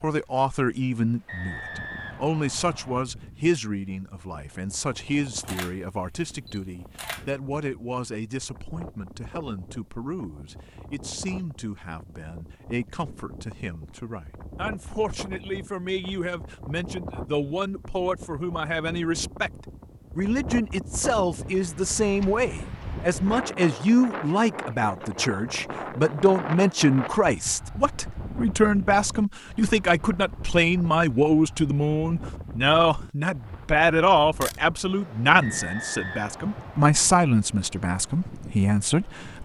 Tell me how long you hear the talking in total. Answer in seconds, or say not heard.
39 s.